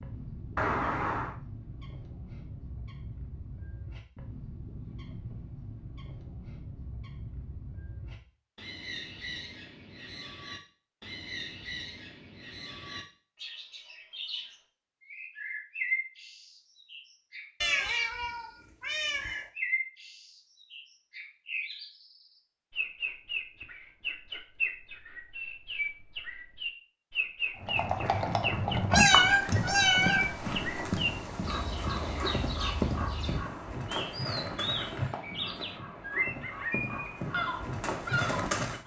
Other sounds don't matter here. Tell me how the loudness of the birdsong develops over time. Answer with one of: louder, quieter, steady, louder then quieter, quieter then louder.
louder.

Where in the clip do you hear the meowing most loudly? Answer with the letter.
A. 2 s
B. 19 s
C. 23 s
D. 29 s
D.